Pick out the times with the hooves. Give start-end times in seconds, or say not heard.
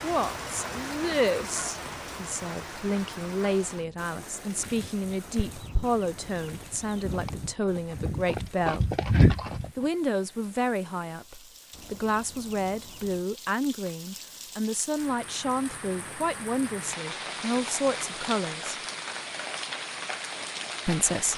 4.5-9.7.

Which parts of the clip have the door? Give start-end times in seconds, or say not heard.
not heard.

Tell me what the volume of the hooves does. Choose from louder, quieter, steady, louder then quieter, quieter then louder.
louder.